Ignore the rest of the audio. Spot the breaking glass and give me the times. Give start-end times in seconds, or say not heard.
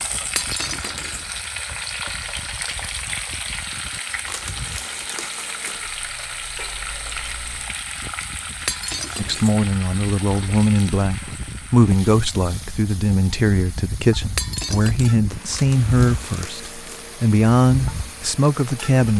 0.3-1.2, 8.7-9.6, 14.3-15.1.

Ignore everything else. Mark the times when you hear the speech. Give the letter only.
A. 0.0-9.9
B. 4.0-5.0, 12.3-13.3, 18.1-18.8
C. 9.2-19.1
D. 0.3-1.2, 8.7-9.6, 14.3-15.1
C.